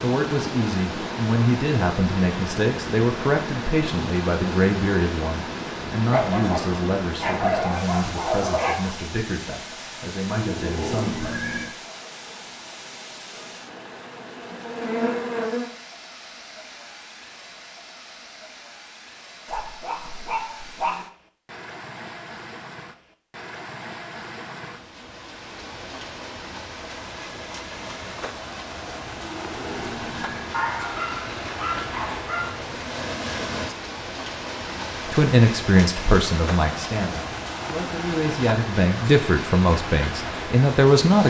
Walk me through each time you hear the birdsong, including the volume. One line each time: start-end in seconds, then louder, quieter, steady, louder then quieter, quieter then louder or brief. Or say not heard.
not heard.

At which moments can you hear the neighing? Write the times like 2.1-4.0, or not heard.
10.2-11.8, 29.1-30.5.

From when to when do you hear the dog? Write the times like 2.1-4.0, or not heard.
6.1-8.9, 19.4-21.1, 30.5-32.5.